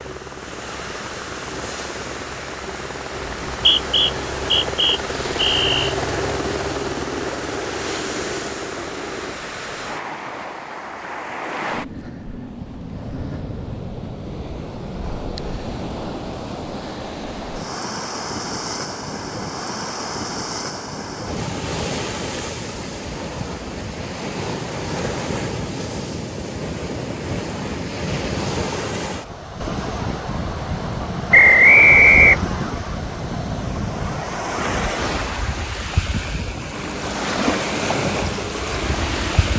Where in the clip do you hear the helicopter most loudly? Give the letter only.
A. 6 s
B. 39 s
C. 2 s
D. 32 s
A.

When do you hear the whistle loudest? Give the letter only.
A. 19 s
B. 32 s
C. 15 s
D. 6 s
B.